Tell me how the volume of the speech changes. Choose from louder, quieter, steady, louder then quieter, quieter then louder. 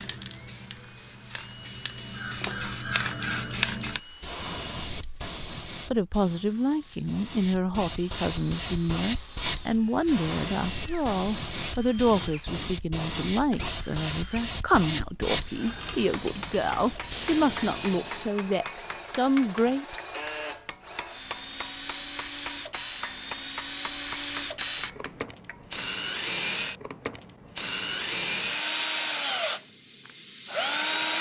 steady.